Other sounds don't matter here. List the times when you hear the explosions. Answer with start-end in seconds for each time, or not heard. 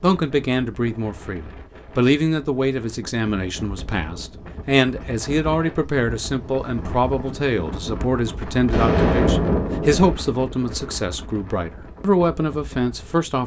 8.7-10.2.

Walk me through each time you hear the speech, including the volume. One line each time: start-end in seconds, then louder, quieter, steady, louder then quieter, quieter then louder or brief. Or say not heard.
0.0-13.4 steady.